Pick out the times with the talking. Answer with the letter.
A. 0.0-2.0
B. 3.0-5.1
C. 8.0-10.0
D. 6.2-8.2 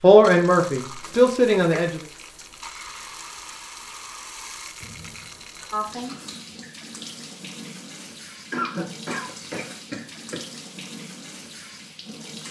A.